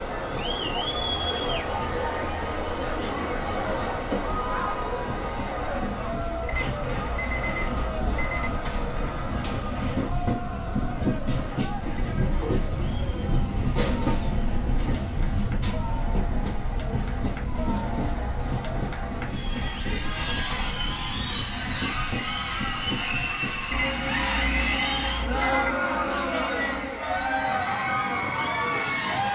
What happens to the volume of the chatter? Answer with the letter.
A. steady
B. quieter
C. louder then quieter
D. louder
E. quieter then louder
E.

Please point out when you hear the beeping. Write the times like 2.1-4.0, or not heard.
6.5-8.5, 23.7-25.8.